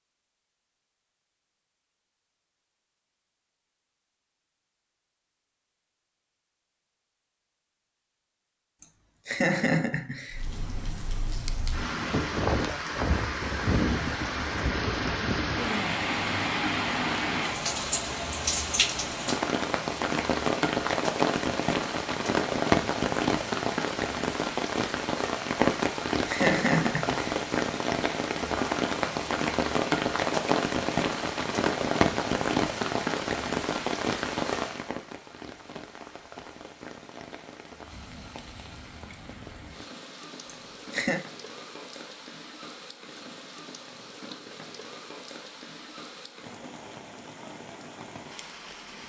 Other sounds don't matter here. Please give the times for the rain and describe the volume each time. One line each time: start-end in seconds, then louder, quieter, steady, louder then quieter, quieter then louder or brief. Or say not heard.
10.3-49.0 quieter.